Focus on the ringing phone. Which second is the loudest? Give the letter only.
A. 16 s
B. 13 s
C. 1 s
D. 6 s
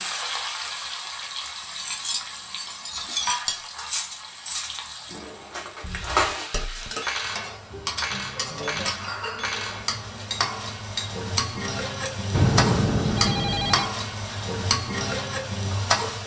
B.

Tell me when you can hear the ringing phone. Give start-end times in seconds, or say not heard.
12.3-13.9.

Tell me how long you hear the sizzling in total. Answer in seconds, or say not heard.
16 s.